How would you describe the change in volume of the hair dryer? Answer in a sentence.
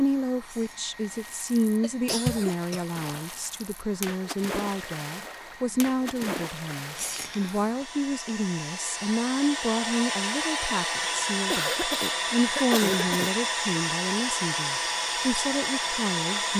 The loudness of the hair dryer goes up.